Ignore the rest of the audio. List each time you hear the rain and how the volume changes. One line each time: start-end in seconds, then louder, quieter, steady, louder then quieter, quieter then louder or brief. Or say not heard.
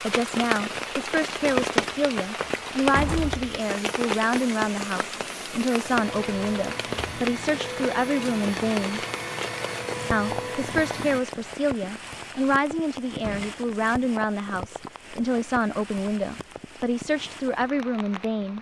0.0-18.5 quieter.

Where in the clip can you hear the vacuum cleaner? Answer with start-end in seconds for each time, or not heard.
3.5-11.2.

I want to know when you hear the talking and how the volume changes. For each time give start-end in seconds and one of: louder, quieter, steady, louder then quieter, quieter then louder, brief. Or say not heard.
0.0-9.0 steady
10.1-18.5 steady.